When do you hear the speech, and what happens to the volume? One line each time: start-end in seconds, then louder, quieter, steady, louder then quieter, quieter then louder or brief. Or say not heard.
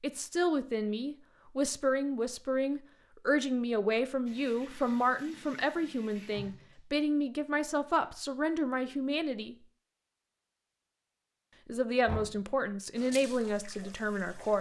0.0-9.6 steady
11.7-14.5 brief.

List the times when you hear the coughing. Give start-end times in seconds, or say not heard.
not heard.